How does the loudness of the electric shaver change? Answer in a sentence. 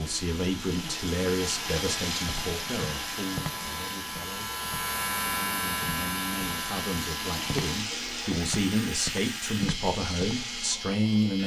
The loudness of the electric shaver goes up, then down.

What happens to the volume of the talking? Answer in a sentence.
The loudness of the talking goes down, then up.